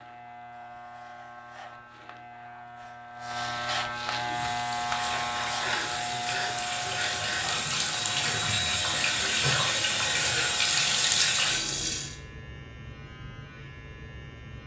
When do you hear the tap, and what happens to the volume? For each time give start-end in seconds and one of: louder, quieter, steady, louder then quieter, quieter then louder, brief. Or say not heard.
4.2-12.2 louder.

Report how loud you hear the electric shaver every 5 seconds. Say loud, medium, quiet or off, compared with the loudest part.
loud, loud, medium.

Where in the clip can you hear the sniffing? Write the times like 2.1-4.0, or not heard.
5.0-7.5.